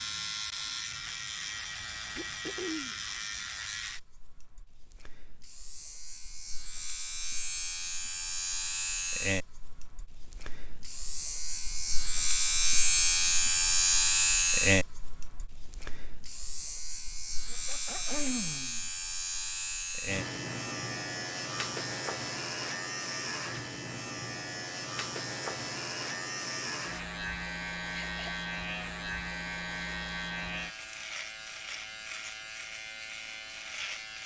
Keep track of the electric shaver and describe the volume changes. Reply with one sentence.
The loudness of the electric shaver goes up, then down.